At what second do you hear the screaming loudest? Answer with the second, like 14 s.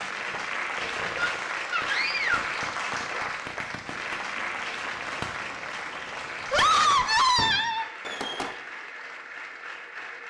7 s.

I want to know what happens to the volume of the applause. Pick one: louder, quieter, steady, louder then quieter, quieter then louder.
quieter.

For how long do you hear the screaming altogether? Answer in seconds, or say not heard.
3 s.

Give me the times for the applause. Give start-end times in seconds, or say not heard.
0.0-10.2.